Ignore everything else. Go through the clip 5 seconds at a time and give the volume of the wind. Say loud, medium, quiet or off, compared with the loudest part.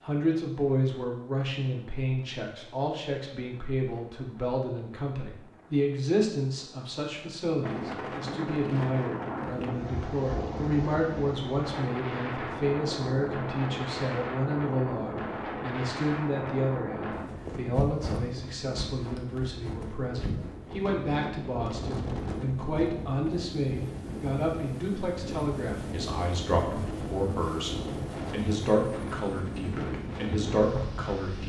quiet, loud, loud, loud, loud, loud, loud.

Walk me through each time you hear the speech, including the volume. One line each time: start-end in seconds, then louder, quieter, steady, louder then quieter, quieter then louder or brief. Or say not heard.
0.0-31.4 steady.